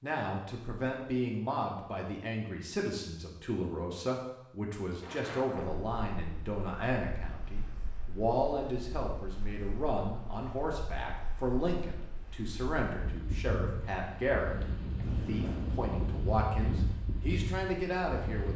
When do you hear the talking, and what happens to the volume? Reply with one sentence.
The talking can be heard from 0.0 to 18.5 s, at a steady volume.